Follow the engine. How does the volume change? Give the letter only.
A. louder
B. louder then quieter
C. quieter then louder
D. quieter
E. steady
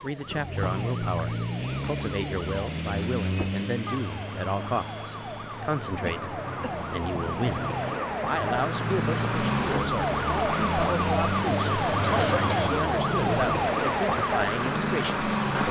C.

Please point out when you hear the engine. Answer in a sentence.
The engine can be heard from 0.0 to 12.7 s.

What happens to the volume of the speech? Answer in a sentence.
The volume of the speech stays about the same.